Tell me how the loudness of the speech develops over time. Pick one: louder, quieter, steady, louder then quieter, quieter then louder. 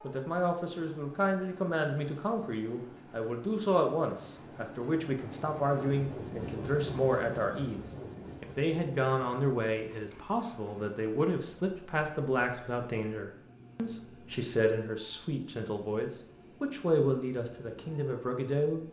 steady.